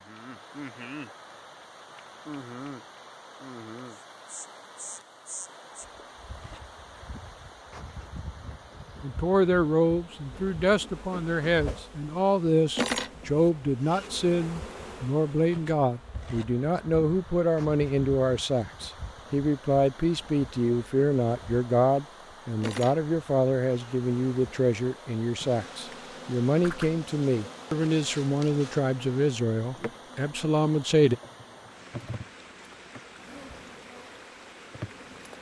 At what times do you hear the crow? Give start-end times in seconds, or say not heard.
not heard.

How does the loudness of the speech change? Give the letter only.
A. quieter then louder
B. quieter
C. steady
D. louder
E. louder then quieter
C.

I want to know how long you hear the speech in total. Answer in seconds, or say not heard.
22 s.